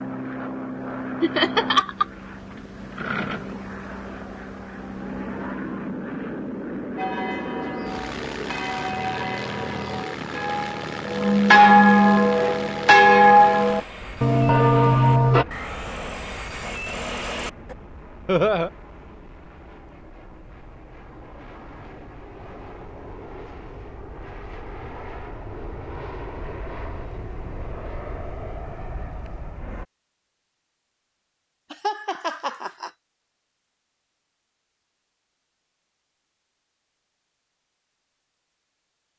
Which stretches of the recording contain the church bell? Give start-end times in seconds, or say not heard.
7.0-15.4.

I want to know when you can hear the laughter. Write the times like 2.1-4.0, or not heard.
1.2-2.0, 18.2-18.7, 31.7-32.9.